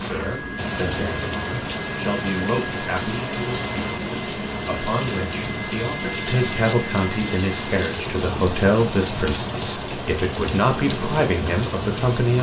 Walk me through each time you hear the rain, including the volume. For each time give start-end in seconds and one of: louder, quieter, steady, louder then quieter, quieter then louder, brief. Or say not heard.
0.0-12.3 steady.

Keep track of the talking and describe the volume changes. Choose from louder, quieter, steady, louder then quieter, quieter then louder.
louder.